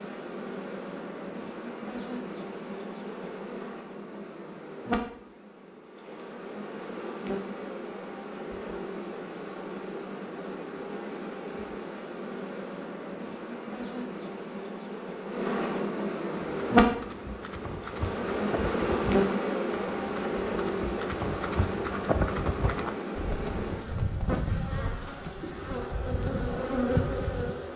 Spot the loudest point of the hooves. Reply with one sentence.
The loudest moment of the hooves is at 22 seconds.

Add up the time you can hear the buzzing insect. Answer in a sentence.
The buzzing insect can be heard for 28 seconds in total.